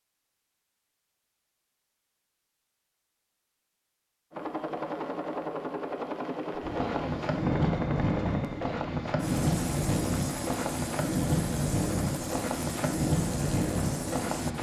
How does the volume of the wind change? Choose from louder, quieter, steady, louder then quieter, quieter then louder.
steady.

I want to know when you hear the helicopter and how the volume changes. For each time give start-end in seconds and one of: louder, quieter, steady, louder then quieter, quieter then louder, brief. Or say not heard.
4.3-14.5 steady.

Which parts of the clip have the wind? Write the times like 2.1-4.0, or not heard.
6.6-14.5.